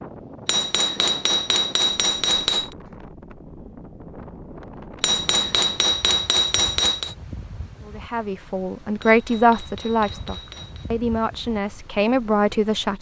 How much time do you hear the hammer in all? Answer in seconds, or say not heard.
6 s.